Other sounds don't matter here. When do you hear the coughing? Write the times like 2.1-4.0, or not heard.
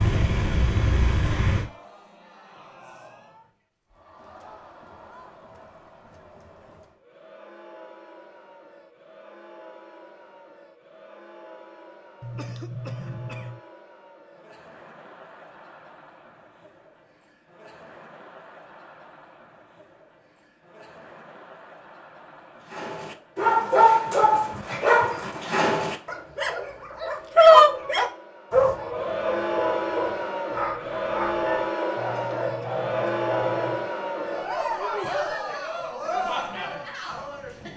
12.2-13.6, 31.9-34.0.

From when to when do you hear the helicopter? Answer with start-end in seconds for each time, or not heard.
0.0-1.7.